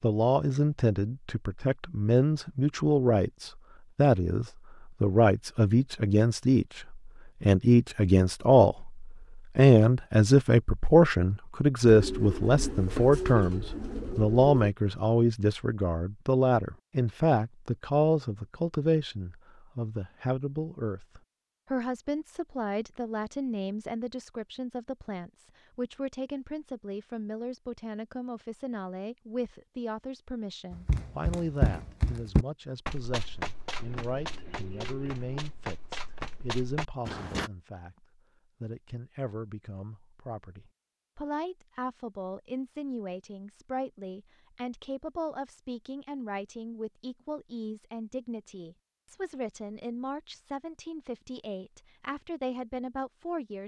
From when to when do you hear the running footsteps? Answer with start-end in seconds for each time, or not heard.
30.7-37.5.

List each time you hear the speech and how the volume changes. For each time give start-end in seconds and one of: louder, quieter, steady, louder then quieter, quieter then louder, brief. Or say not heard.
0.0-53.6 quieter.